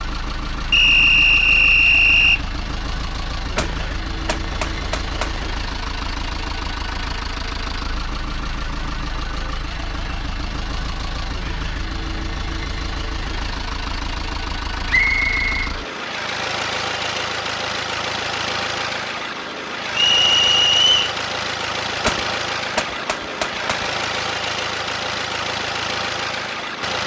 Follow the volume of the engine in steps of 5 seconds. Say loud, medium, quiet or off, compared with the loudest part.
medium, medium, medium, loud, loud, loud.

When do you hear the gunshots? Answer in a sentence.
You can hear the gunshots from 3.5 to 5.5 s and from 22.0 to 23.9 s.